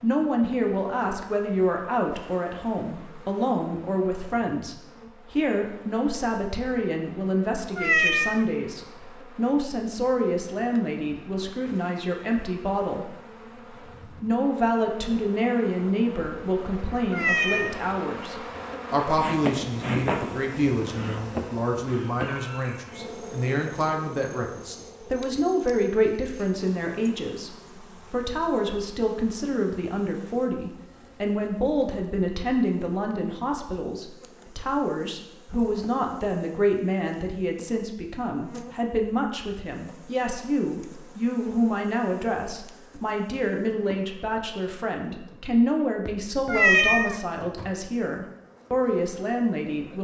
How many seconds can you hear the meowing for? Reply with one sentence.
You can hear the meowing for 2 seconds altogether.